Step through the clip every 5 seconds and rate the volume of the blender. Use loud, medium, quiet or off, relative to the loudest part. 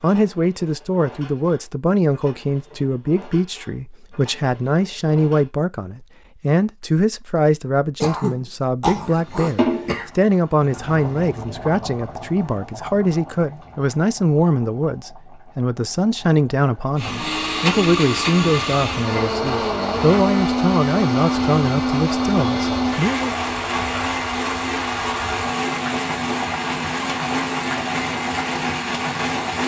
off, off, off, loud, loud, loud.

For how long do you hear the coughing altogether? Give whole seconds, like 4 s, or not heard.
2 s.